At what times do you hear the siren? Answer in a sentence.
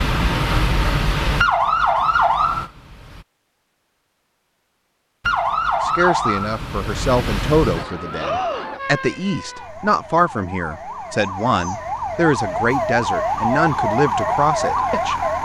The siren can be heard from 0.0 to 3.2 s and from 5.2 to 15.4 s.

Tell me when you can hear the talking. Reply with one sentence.
You can hear the talking from 5.8 to 15.2 s.